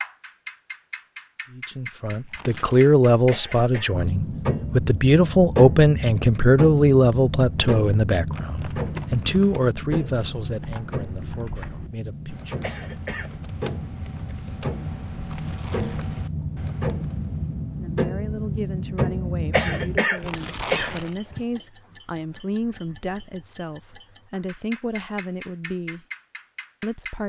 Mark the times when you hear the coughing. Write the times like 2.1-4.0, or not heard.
3.3-4.0, 12.6-13.3, 19.5-21.4.